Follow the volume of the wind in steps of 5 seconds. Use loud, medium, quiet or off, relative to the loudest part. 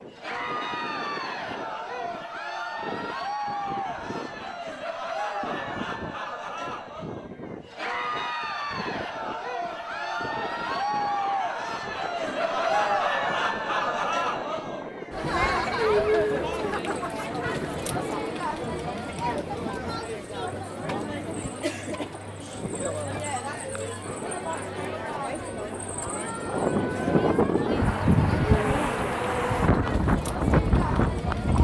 quiet, quiet, quiet, quiet, quiet, loud, loud.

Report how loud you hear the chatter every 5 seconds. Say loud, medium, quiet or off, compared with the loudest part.
medium, medium, loud, loud, medium, medium, medium.